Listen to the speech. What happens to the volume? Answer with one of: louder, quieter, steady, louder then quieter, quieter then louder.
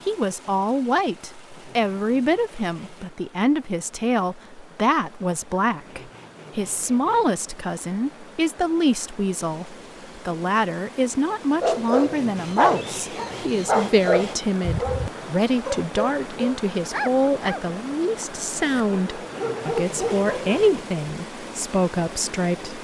steady.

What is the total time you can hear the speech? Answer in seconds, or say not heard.
23 s.